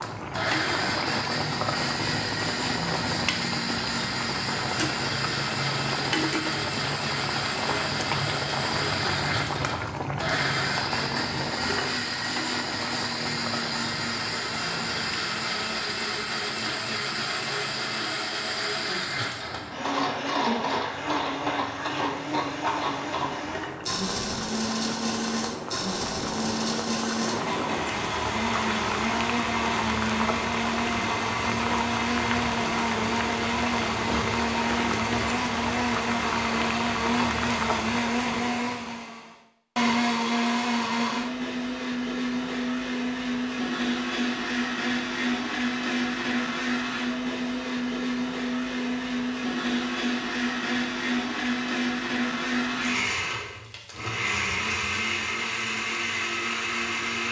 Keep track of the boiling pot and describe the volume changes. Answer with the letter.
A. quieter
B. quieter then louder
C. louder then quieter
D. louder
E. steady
B.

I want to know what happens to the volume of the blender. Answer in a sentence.
The volume of the blender stays about the same.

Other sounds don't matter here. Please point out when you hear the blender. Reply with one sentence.
The blender can be heard from 0.0 to 57.2 s.